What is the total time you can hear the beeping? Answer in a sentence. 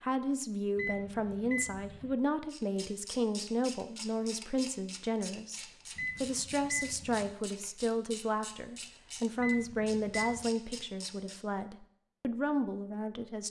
The beeping can be heard for 4 seconds in total.